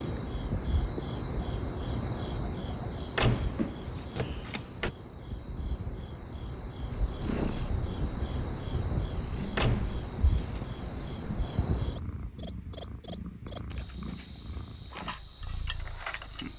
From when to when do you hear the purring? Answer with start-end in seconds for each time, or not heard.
6.9-16.5.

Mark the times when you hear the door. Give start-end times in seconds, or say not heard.
3.1-4.9, 9.6-10.6.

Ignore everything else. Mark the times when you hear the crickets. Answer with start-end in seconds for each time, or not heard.
0.0-16.5.